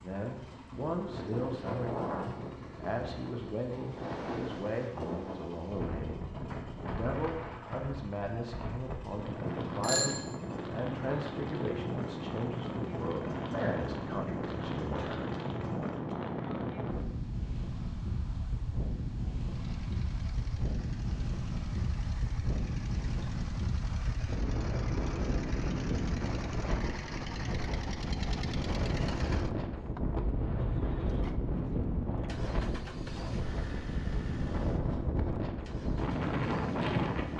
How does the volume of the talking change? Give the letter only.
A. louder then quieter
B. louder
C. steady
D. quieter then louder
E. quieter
C.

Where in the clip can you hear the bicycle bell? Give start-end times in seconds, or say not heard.
9.4-10.1.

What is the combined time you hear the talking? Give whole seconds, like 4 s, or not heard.
15 s.